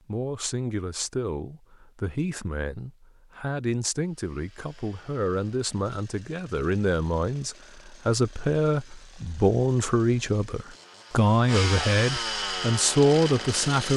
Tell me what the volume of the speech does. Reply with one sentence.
The loudness of the speech goes up.